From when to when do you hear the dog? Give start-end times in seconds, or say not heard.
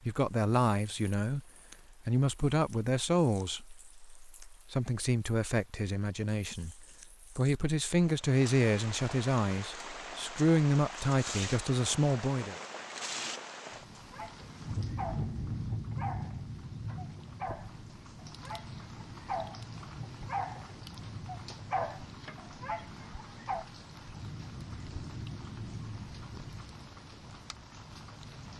14.1-23.6.